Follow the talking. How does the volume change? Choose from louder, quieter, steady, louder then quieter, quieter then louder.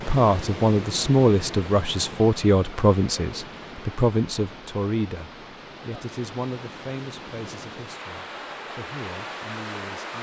quieter.